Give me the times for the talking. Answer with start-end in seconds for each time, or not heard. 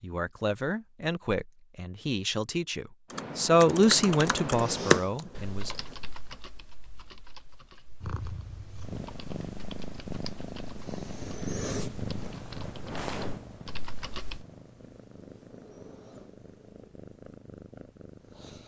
0.0-5.8.